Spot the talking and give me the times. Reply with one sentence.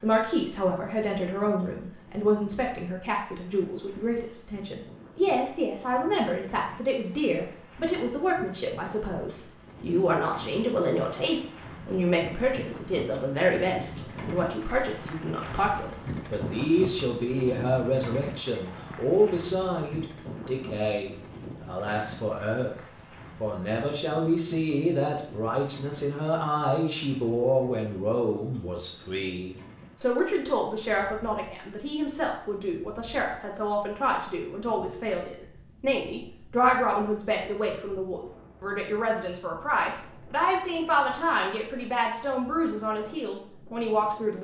The talking can be heard from 0.0 to 22.8 s and from 23.4 to 44.4 s.